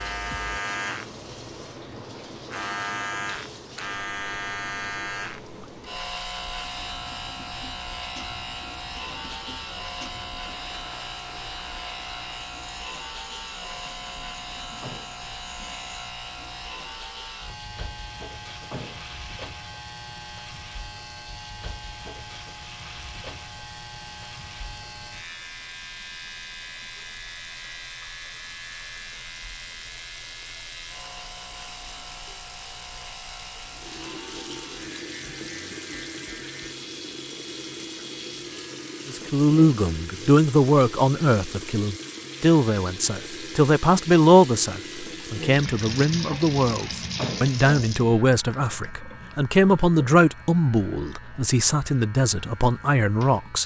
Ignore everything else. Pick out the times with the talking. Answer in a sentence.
You can hear the talking from 39.0 to 53.6 s.